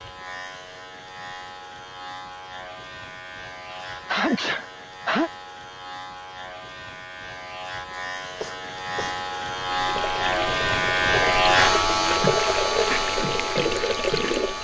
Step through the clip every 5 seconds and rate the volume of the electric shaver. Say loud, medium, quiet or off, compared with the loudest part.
quiet, medium, loud.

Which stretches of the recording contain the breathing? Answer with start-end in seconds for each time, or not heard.
not heard.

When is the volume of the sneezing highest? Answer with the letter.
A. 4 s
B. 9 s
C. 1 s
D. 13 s
A.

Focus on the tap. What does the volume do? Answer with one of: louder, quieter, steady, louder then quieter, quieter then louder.
louder.